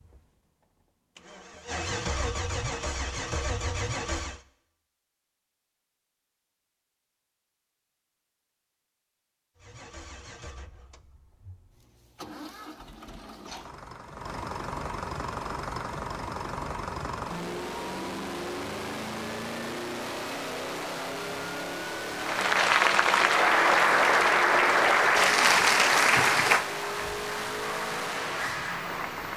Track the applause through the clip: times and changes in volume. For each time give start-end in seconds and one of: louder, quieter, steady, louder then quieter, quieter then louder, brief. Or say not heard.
22.1-29.3 quieter.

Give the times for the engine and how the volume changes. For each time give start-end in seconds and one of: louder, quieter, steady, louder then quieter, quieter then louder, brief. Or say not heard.
0.0-4.4 louder
9.6-29.3 louder.